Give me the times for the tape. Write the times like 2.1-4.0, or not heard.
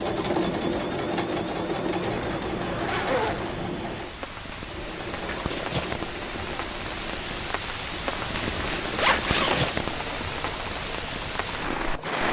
not heard.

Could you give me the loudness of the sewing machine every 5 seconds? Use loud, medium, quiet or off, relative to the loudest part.
loud, medium, medium.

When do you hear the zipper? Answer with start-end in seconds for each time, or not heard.
2.1-3.6, 8.2-9.8.